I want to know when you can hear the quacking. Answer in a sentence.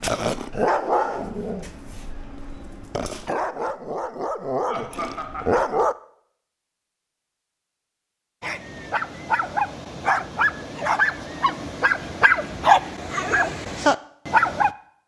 You can't hear the quacking here.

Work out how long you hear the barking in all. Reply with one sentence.
The barking can be heard for 12 seconds in total.